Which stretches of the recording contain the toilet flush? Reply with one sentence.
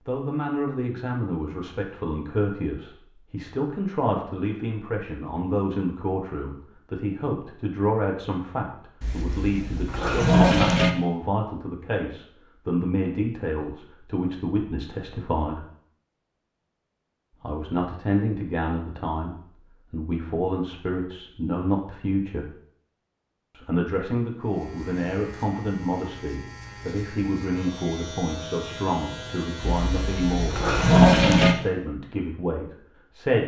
The toilet flush can be heard from 9.0 to 10.9 s and from 29.6 to 31.6 s.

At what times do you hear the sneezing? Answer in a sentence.
The sneezing can't be heard in this clip.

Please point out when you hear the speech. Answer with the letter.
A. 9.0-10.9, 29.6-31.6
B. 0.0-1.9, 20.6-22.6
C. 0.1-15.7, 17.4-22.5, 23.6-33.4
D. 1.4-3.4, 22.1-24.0
C.